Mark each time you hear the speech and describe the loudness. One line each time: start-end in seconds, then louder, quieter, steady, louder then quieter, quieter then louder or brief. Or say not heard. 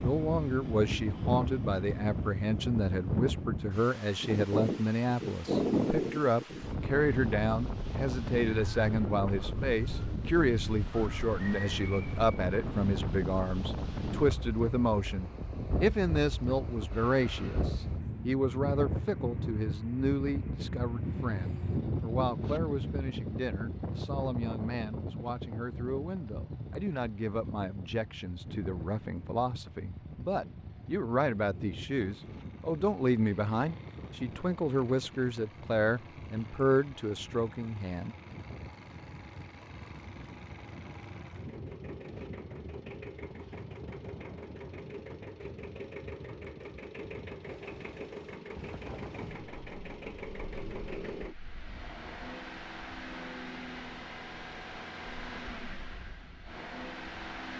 0.0-38.1 quieter then louder.